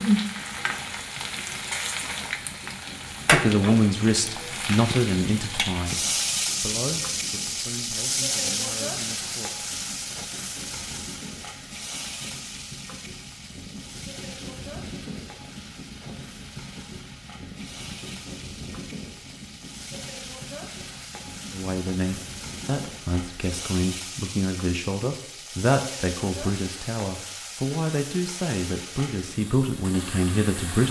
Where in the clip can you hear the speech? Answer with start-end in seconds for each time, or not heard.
3.3-9.5, 21.5-30.8.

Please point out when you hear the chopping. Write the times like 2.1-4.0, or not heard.
not heard.